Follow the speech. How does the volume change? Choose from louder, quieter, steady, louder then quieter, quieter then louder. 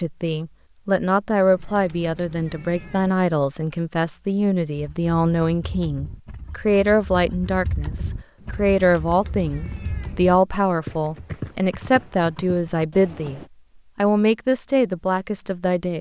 steady.